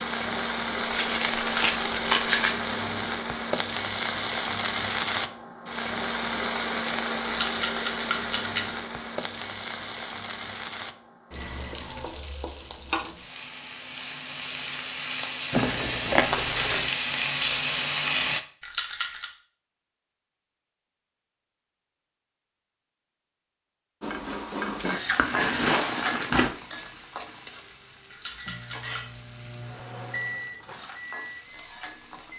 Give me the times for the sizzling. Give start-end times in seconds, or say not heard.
0.0-18.4, 24.0-32.3.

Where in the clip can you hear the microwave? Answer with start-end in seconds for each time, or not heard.
28.3-32.3.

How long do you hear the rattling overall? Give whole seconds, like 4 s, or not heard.
3 s.